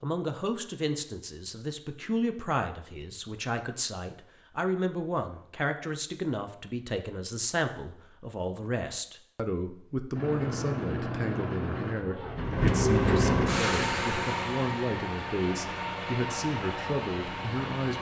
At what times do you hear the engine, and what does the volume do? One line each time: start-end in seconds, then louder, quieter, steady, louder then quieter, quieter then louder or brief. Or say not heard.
10.1-17.9 louder then quieter.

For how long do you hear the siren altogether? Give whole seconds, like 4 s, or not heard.
not heard.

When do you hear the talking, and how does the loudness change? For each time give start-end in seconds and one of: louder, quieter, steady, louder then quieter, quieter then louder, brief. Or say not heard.
0.0-17.9 steady.